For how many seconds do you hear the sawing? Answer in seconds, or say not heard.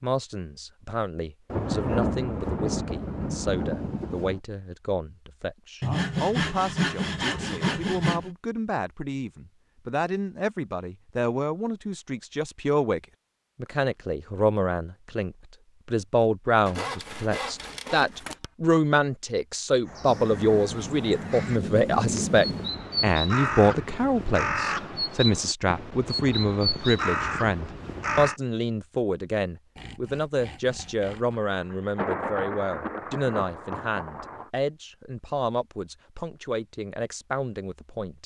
6 s.